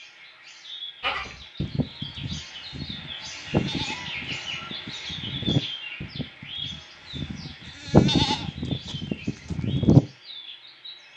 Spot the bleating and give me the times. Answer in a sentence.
You can hear the bleating from 1.0 to 10.0 s.